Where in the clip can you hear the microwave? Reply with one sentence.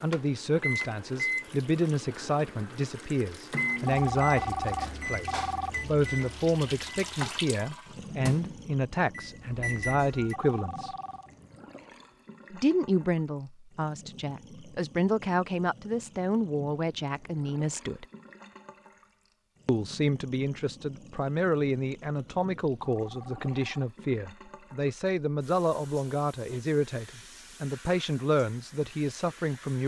The microwave can be heard from 0.1 to 10.3 s.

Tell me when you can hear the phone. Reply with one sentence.
The phone can be heard from 3.9 to 5.7 s, from 10.3 to 11.3 s and from 22.9 to 23.9 s.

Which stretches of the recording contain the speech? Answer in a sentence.
The speech can be heard from 0.0 to 10.9 s, from 12.5 to 18.1 s and from 19.6 to 29.8 s.